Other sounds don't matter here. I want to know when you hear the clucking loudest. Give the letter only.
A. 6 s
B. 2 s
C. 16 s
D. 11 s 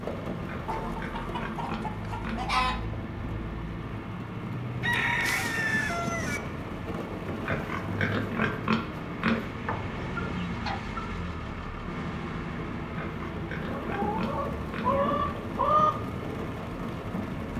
C.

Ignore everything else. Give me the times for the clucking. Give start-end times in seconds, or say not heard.
0.7-2.8, 4.8-6.4, 9.6-11.0, 13.7-16.1.